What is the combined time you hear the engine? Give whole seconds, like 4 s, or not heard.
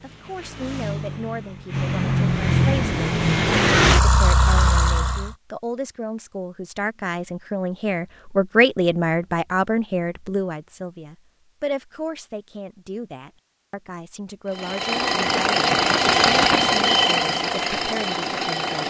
10 s.